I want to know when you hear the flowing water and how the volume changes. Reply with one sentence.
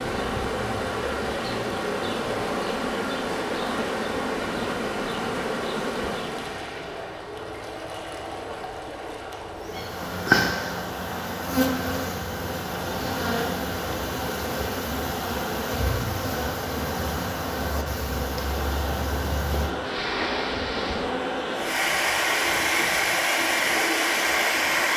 The flowing water can be heard from 0.0 to 24.9 s, getting louder.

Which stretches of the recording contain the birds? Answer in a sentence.
You can't hear the birds here.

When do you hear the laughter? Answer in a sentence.
You can't hear the laughter here.